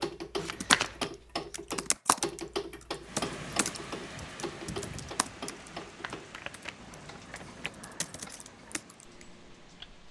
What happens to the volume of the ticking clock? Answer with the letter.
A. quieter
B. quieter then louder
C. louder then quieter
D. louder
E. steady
A.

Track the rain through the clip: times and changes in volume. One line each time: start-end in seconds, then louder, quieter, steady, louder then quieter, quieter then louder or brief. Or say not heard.
3.0-10.0 quieter.